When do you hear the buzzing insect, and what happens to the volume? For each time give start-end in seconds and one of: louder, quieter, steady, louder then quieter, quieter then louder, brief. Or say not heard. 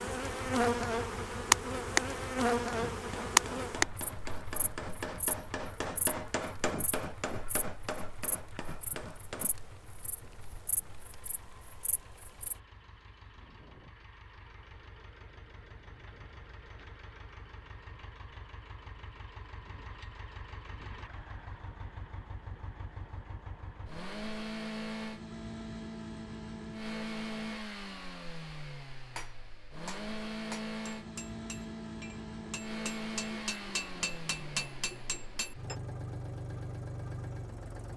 0.0-12.6 quieter.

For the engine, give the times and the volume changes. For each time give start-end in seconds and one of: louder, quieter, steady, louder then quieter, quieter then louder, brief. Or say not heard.
0.0-37.9 quieter then louder.